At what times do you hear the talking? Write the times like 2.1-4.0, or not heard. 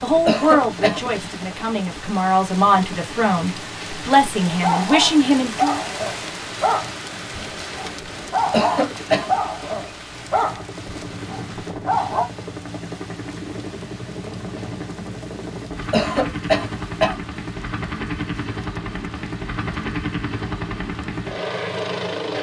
0.0-5.8.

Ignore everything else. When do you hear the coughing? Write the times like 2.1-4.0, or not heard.
0.2-1.1, 8.5-9.3, 15.9-17.1.